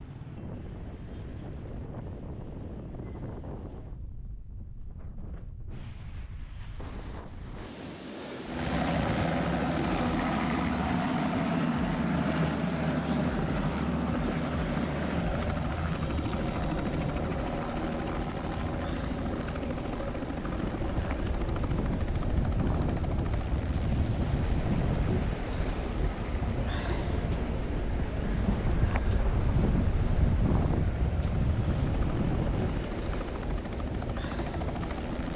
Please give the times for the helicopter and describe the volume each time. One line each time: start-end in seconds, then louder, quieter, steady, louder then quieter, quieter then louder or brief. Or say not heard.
8.4-35.3 quieter.